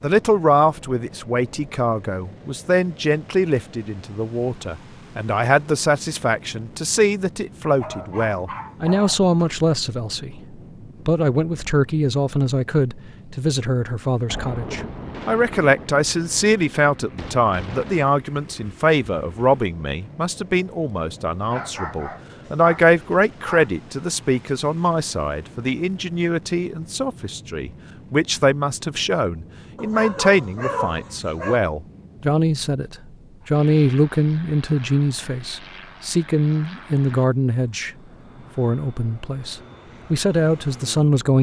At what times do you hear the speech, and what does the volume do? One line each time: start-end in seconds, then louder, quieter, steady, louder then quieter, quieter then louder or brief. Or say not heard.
0.0-37.9 steady
38.5-41.3 brief.